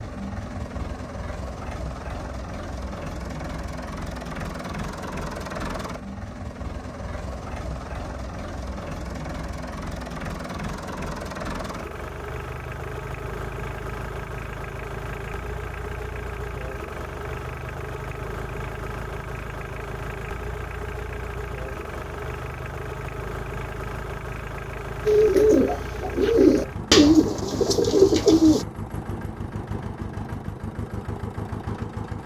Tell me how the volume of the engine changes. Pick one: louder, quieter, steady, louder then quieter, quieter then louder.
steady.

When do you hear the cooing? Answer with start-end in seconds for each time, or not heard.
25.1-28.6.